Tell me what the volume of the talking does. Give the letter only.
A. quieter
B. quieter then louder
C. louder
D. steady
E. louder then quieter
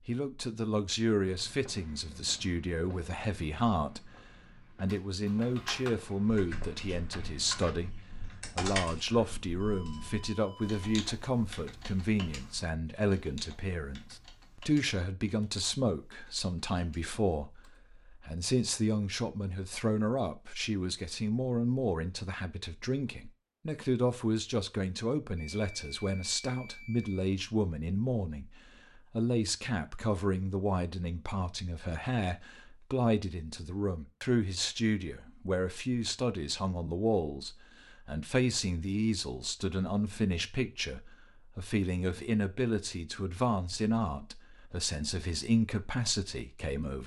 D.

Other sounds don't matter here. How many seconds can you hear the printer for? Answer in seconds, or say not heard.
not heard.